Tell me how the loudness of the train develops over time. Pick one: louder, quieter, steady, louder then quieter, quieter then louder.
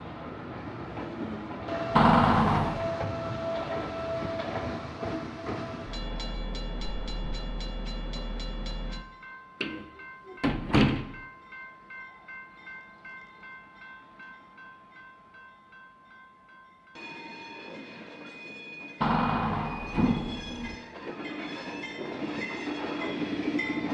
quieter then louder.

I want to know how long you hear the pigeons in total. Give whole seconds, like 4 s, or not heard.
not heard.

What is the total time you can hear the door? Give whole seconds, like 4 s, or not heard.
4 s.